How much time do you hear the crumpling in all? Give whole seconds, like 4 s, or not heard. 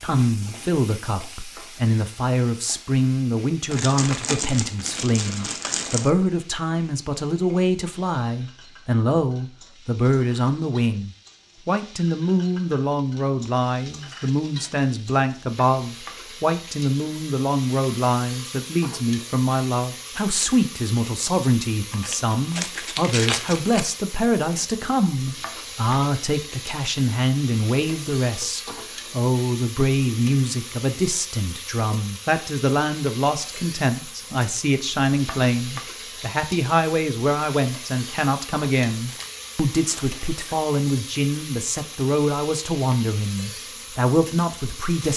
6 s.